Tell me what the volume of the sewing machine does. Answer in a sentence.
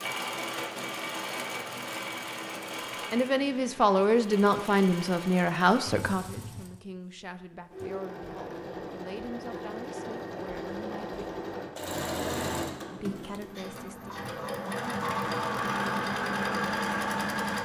The loudness of the sewing machine goes down, then up.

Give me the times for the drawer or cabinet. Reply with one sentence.
You can hear the drawer or cabinet from 12.7 to 13.6 s.